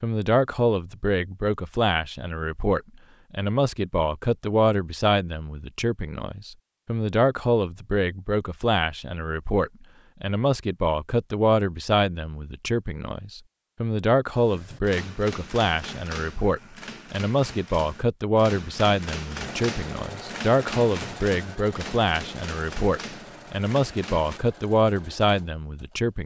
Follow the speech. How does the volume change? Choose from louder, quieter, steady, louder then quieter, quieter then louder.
steady.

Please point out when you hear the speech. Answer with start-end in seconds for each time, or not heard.
0.0-26.2.